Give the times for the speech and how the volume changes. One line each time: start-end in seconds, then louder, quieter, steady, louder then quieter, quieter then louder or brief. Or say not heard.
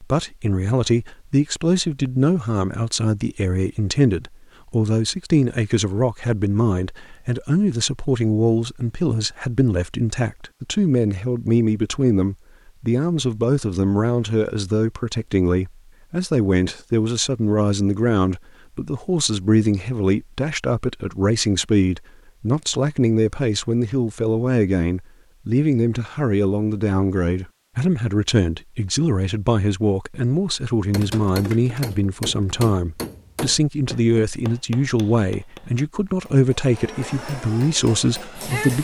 0.0-38.7 steady.